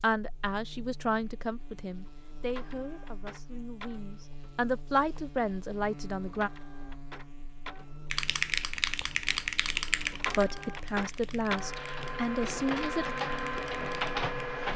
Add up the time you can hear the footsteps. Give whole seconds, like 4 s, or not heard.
not heard.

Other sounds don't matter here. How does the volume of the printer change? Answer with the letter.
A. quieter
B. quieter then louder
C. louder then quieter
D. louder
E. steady
D.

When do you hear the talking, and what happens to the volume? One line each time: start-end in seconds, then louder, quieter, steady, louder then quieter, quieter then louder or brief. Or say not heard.
0.0-6.5 quieter then louder
10.3-13.1 brief.